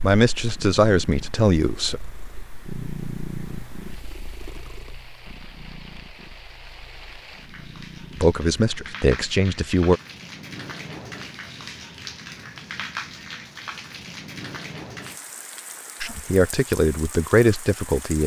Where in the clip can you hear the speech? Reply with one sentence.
The speech can be heard from 0.0 to 2.0 s, from 8.2 to 10.0 s and from 16.0 to 18.2 s.